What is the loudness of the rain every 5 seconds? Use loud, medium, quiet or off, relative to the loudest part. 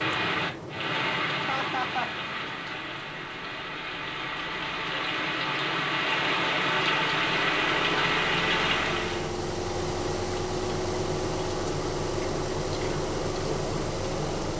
medium, loud, off.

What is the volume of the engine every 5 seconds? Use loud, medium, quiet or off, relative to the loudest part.
quiet, medium, loud.